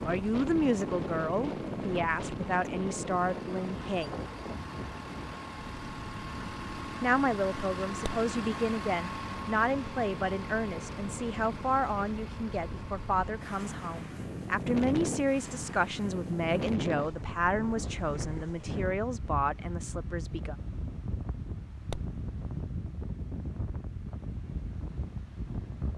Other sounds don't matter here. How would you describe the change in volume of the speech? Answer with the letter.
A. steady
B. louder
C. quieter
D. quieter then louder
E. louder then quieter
A.